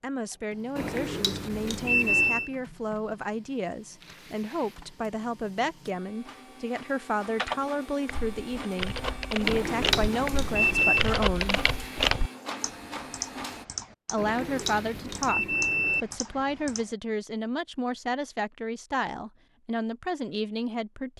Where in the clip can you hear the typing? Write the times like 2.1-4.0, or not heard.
7.3-16.9.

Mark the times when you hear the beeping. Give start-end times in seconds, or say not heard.
0.8-2.5, 9.4-11.1, 14.2-16.1.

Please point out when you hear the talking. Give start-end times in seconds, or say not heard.
0.0-11.6, 14.1-21.1.